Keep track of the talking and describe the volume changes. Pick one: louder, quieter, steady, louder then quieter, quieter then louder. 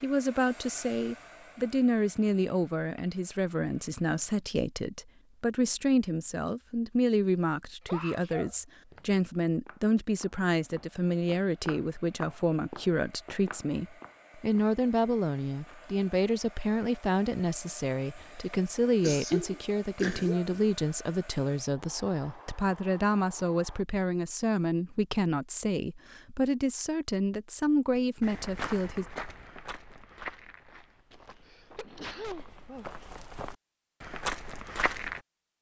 steady.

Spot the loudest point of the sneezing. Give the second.
19 s.